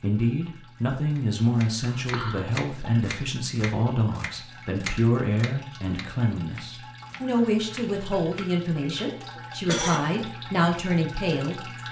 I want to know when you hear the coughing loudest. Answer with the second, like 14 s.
10 s.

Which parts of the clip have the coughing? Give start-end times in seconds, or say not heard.
1.8-2.4, 9.3-10.0.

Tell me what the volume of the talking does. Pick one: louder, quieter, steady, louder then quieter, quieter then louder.
steady.